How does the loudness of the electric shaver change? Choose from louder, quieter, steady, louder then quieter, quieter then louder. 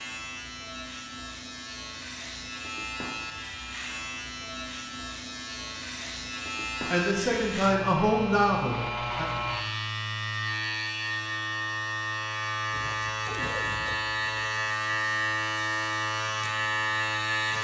louder.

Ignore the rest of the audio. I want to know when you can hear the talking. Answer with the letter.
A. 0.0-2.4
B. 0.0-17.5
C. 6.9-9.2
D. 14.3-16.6
C.